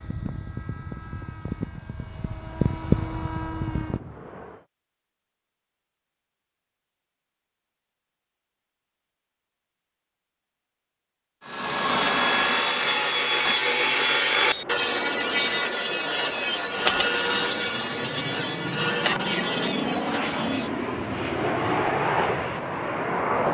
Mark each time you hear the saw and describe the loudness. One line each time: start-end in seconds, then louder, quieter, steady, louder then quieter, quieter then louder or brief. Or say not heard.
11.4-20.7 quieter.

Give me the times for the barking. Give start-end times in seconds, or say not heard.
not heard.